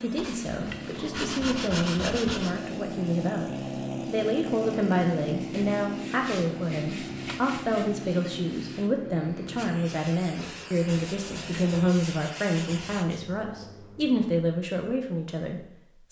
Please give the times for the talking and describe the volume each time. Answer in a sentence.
You can hear the talking from 0.0 to 16.0 s, at a steady volume.